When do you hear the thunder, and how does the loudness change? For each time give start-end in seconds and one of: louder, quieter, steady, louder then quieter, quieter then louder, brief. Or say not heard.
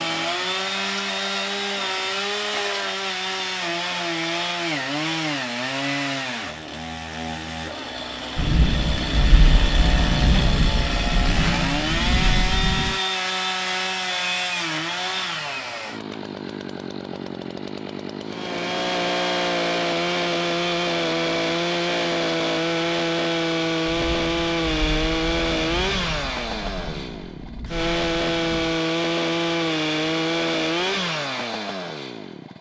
8.3-12.9 steady
23.9-28.8 steady.